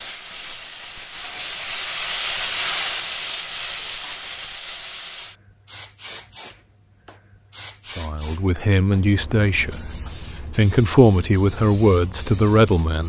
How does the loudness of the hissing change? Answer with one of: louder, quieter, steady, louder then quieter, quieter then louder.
quieter.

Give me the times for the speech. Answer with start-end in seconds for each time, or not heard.
7.8-13.0.